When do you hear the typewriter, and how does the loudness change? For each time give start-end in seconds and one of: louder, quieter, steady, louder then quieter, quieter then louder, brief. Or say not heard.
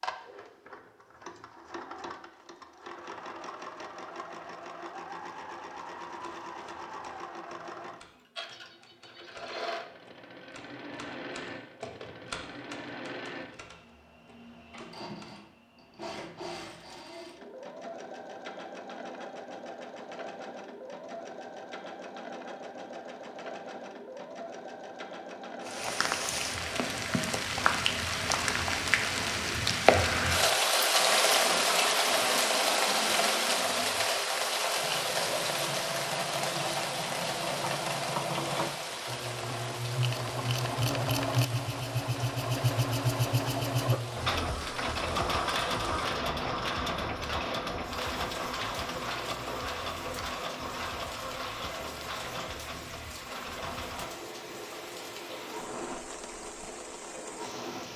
6.0-15.3 louder then quieter.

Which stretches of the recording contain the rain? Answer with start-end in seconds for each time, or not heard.
25.6-57.9.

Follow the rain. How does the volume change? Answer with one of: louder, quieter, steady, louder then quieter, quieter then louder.
quieter.